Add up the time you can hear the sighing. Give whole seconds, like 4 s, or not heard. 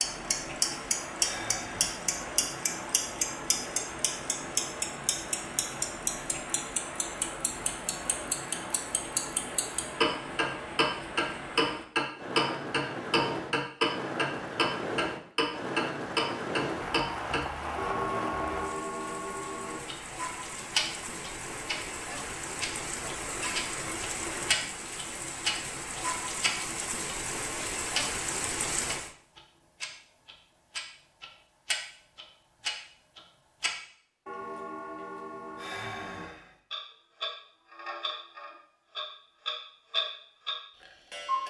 2 s.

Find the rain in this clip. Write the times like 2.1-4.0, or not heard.
0.0-29.1.